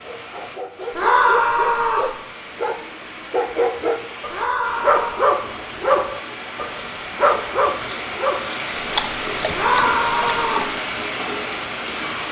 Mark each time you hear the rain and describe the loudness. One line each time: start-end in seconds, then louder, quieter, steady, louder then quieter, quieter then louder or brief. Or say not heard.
0.0-12.2 louder.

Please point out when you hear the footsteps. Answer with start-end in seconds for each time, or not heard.
not heard.